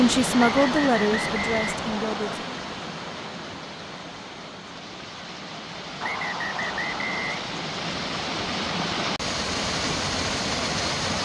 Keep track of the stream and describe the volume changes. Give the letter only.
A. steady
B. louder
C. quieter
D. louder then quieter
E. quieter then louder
E.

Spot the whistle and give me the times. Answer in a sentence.
You can hear the whistle from 0.3 to 2.4 s and from 6.0 to 7.5 s.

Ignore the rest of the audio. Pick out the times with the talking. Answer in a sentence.
The talking can be heard from 0.0 to 2.5 s.